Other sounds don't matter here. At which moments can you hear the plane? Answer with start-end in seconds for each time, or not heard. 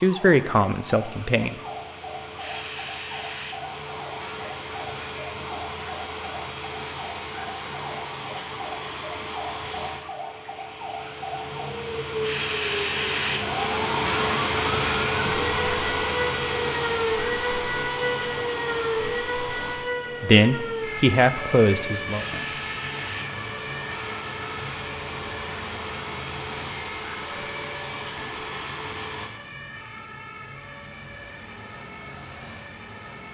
0.0-29.3.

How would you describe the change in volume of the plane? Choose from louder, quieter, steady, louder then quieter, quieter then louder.
louder then quieter.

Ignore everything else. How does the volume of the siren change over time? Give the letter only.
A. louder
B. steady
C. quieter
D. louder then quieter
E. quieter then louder
D.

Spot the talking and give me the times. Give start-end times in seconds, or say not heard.
0.0-1.6, 20.2-22.2.